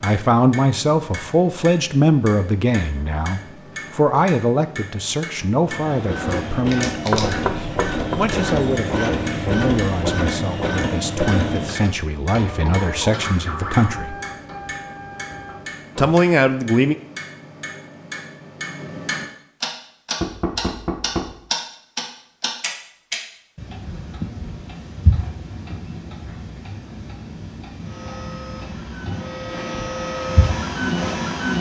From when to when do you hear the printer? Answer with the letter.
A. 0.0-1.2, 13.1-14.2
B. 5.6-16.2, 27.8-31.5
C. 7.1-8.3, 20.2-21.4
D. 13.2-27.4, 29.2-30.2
B.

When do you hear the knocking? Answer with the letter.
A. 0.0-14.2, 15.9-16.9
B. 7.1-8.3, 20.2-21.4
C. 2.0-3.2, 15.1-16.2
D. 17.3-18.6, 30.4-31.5
B.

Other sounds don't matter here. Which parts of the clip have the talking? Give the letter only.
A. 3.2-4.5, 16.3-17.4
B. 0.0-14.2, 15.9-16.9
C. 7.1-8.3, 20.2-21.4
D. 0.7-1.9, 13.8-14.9
B.